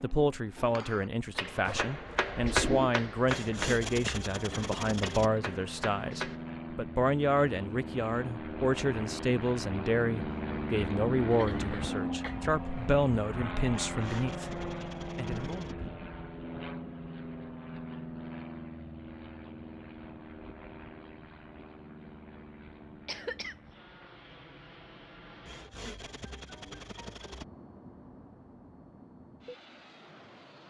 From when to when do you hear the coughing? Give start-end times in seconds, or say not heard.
1.6-3.0, 11.3-12.3, 23.1-23.6.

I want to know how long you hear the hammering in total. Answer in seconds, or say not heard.
6 s.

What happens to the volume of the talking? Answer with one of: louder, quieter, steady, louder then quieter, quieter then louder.
steady.